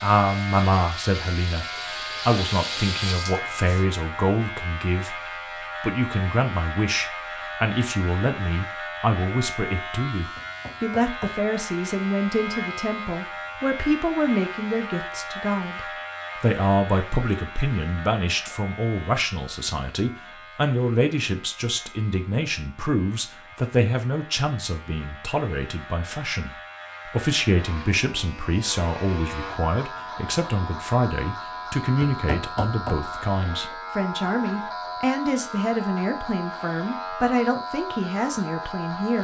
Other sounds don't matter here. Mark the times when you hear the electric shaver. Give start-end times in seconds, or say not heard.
0.0-39.1.